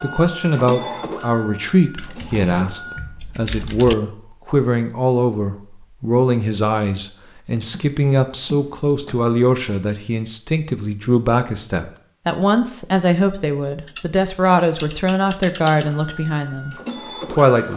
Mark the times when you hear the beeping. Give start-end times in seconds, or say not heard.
not heard.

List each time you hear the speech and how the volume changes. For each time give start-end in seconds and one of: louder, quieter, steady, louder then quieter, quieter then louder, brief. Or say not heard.
0.0-17.7 steady.